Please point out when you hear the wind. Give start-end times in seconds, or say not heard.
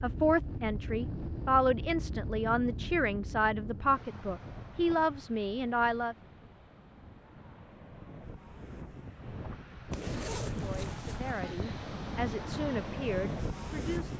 0.0-14.1.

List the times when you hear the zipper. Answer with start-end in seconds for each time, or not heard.
9.9-11.3.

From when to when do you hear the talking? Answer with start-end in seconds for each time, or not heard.
0.0-6.2, 10.6-14.1.